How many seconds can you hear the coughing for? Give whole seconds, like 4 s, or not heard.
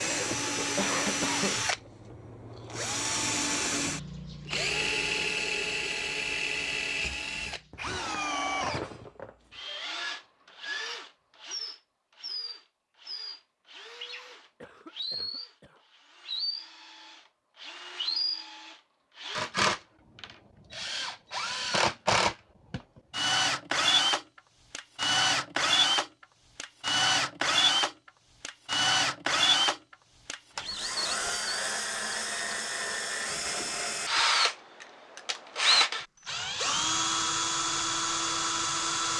3 s.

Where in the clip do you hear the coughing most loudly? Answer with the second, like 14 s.
1 s.